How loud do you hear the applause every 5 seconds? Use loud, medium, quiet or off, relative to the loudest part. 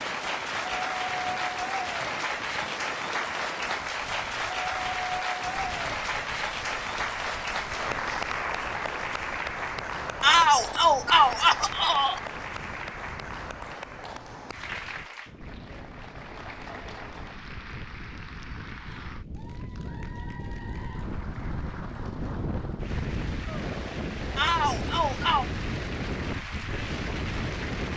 loud, loud, medium, quiet, quiet, medium.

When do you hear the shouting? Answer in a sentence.
You can hear the shouting from 10.2 to 12.2 s and from 24.4 to 25.5 s.